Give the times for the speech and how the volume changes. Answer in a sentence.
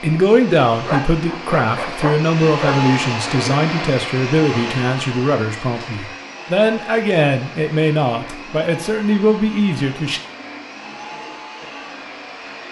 You can hear the speech from 0.0 to 10.2 s, at a steady volume.